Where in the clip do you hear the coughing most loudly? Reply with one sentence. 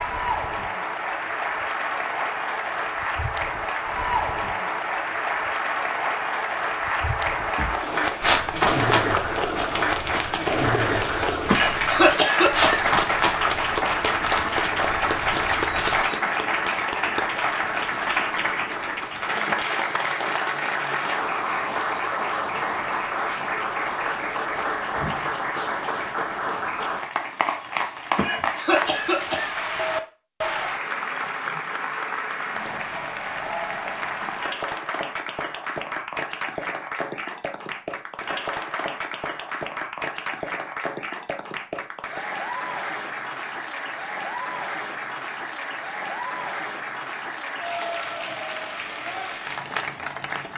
The volume of the coughing peaks at 12 seconds.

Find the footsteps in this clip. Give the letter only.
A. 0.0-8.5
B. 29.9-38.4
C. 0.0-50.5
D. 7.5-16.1
D.